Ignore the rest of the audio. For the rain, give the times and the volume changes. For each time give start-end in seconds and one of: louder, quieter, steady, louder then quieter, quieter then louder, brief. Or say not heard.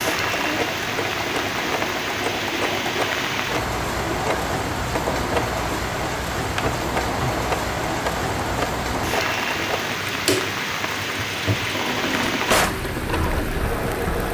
0.0-14.2 steady.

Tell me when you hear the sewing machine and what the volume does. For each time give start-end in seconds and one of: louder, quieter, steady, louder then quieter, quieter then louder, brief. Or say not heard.
0.0-14.2 steady.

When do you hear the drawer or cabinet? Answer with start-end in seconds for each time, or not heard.
12.0-12.8.